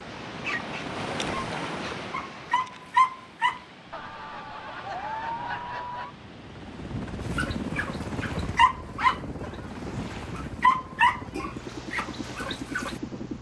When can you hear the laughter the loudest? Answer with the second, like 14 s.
5 s.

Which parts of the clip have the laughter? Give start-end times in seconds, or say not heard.
3.9-6.2.